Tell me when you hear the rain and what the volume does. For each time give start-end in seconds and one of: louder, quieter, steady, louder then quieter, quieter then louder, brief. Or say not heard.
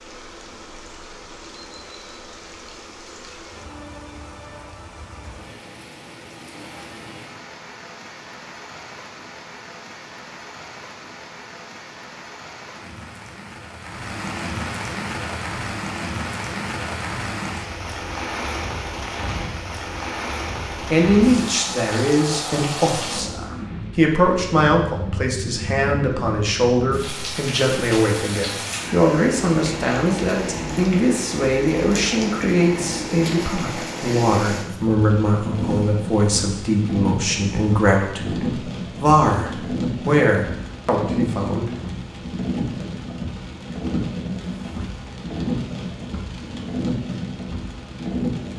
0.0-48.5 louder.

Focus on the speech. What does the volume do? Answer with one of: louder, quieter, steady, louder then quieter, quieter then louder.
steady.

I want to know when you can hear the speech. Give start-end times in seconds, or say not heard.
20.8-41.7.